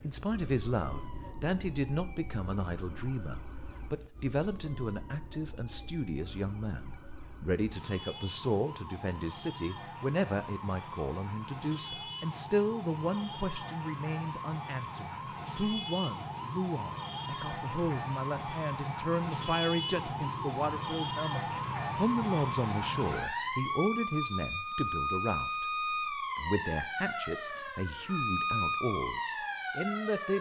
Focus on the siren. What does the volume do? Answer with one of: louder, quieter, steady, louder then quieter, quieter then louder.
louder.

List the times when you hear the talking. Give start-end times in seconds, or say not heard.
0.0-30.3.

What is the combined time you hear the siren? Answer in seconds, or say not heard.
30 s.